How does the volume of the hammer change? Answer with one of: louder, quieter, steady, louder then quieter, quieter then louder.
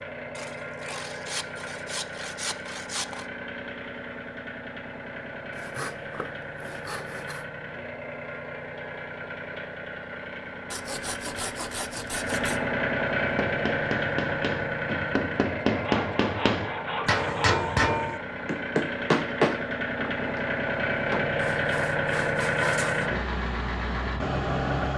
louder then quieter.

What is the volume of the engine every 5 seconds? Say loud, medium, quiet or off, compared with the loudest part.
medium, medium, loud, medium, loud.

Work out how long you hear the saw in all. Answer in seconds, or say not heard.
11 s.